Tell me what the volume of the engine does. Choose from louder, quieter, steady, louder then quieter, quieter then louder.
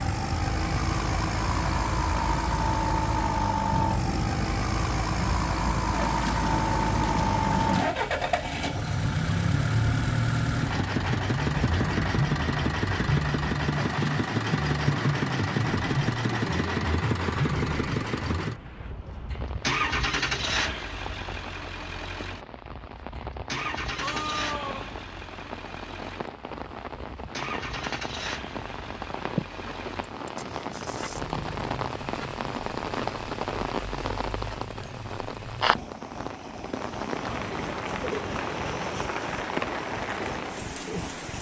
quieter.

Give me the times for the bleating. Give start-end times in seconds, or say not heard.
23.9-25.0.